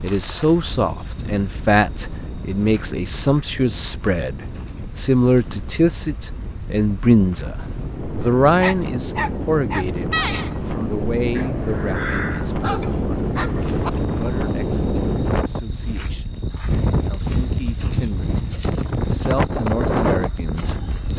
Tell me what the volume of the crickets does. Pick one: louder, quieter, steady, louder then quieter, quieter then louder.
quieter then louder.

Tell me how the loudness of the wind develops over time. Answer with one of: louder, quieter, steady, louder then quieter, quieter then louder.
louder.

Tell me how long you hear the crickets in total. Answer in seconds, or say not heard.
21 s.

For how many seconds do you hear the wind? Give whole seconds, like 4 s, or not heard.
21 s.